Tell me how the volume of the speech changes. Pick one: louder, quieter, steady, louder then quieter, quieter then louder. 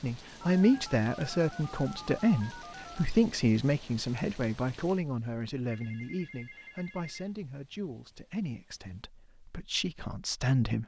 quieter.